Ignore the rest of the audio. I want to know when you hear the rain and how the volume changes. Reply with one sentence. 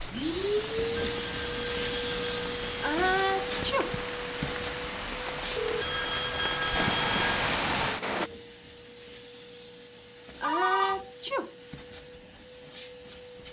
You can hear the rain from 0.0 to 8.3 s, getting louder.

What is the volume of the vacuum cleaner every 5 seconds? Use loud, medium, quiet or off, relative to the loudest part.
loud, medium, quiet.